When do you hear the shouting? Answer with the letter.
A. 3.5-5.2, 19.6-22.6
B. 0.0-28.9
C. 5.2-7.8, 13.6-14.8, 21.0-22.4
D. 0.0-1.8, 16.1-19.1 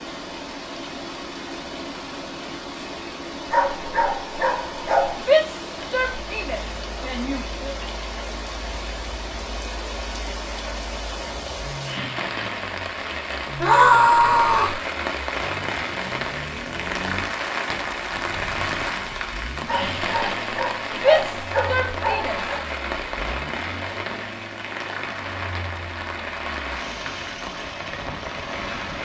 C.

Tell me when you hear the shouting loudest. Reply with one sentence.
The loudest moment of the shouting is at 14 seconds.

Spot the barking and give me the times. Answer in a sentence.
The barking can be heard from 3.5 to 5.2 s and from 19.6 to 22.6 s.